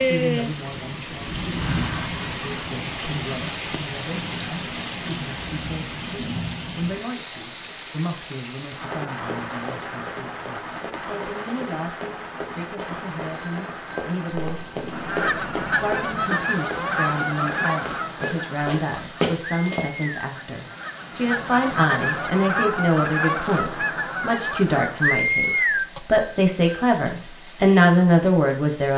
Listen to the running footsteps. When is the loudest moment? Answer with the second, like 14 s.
19 s.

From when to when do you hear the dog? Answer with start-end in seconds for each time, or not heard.
not heard.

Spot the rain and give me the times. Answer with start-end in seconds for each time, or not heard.
0.0-28.9.